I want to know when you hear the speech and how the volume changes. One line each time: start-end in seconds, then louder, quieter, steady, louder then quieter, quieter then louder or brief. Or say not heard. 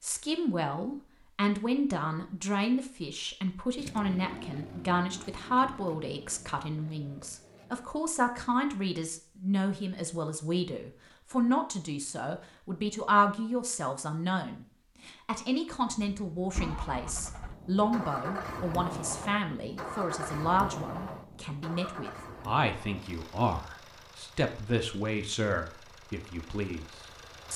0.0-27.5 steady.